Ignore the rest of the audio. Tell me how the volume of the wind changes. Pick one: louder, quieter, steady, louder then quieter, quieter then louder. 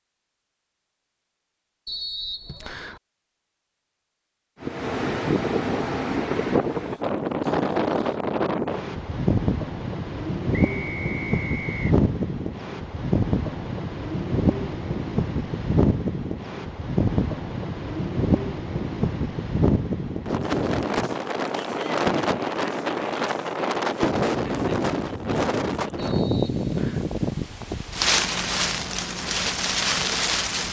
steady.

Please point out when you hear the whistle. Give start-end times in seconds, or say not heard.
1.9-3.0, 10.5-11.8, 25.9-27.1.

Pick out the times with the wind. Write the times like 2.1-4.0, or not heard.
4.6-30.6.